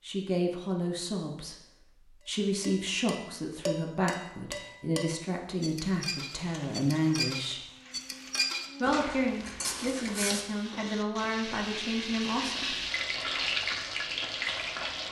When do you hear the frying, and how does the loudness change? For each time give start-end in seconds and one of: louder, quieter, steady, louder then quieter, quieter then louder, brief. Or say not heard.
6.3-15.0 louder.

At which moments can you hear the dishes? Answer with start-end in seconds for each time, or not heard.
2.6-10.9.